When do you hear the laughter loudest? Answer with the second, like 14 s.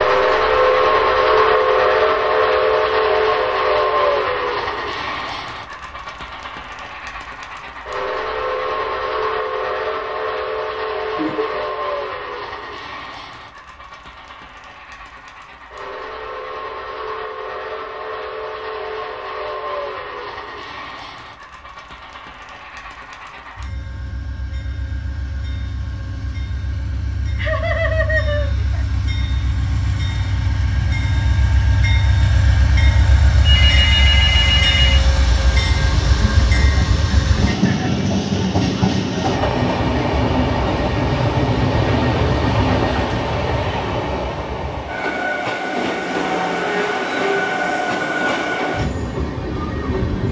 28 s.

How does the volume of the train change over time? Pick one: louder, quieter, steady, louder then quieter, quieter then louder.
quieter then louder.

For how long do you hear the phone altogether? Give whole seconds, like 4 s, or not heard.
2 s.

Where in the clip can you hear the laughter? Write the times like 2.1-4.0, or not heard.
11.2-11.7, 27.4-28.9, 36.2-38.0.